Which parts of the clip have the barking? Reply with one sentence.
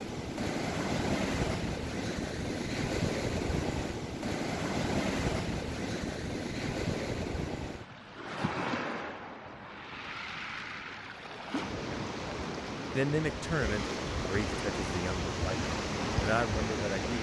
You can't hear the barking here.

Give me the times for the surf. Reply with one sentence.
You can hear the surf from 0.0 to 17.1 s.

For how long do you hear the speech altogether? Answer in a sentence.
The speech can be heard for 4 seconds in total.